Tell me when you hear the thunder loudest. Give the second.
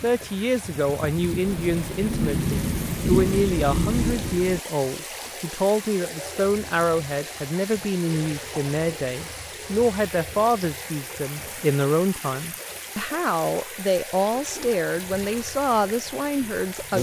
3 s.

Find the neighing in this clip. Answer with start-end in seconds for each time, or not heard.
not heard.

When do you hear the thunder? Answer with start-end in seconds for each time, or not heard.
1.4-4.6.